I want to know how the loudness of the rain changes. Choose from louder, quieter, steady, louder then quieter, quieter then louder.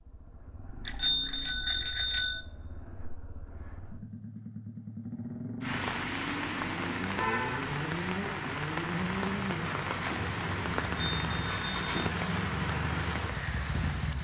steady.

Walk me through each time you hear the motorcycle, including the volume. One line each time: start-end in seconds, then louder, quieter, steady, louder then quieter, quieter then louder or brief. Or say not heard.
0.0-14.2 louder.